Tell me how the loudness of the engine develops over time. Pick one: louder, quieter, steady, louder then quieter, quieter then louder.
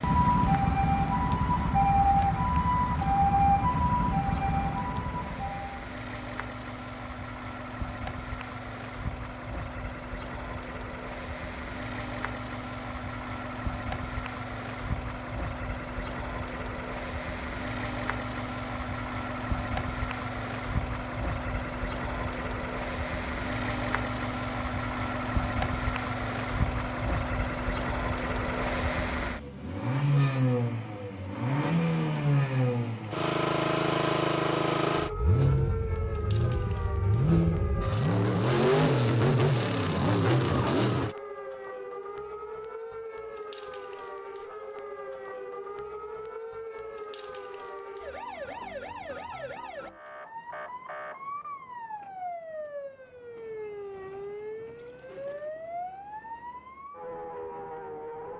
louder.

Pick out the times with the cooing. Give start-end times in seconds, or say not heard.
not heard.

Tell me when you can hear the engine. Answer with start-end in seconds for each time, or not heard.
0.0-41.1.